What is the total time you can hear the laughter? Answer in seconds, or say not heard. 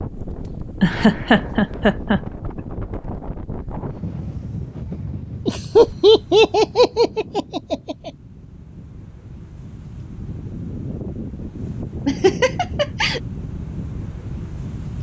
5 s.